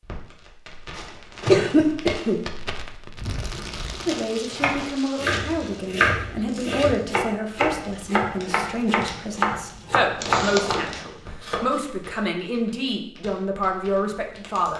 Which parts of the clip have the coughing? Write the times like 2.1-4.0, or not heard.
0.9-2.4, 10.2-10.9.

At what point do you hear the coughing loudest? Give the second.
2 s.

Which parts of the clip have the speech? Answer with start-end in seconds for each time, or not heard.
4.0-14.7.